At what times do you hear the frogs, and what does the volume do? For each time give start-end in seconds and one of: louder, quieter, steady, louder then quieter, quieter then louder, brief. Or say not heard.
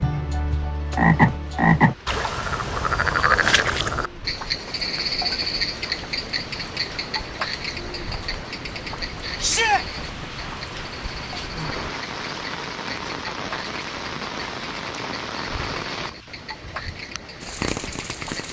0.0-18.4 quieter.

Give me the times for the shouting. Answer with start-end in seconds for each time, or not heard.
9.4-9.8.